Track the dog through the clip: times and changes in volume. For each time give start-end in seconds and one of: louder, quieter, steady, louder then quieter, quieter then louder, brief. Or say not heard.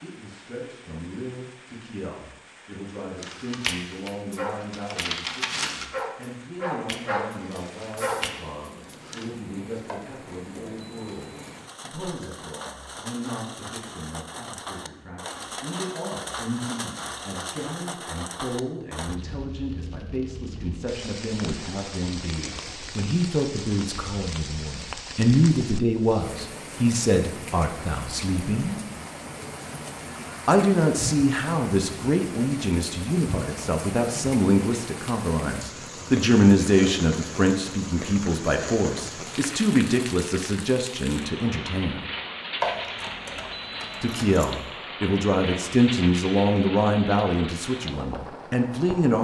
3.2-9.3 steady.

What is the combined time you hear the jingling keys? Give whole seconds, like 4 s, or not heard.
4 s.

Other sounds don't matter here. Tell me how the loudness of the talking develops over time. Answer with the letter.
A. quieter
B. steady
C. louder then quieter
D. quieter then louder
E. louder
E.